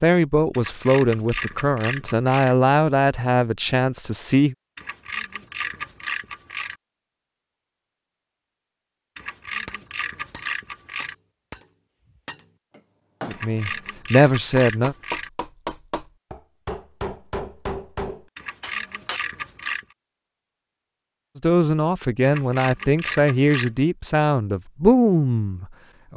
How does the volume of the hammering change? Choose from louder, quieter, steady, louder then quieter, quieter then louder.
louder.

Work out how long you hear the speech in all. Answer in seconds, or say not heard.
11 s.